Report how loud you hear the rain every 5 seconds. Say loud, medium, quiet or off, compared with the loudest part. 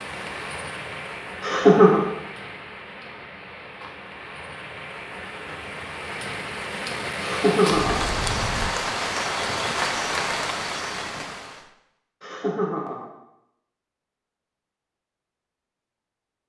medium, loud, loud, off.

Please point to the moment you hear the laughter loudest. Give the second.
2 s.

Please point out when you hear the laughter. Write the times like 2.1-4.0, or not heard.
1.4-2.0, 7.2-8.1, 12.2-13.1.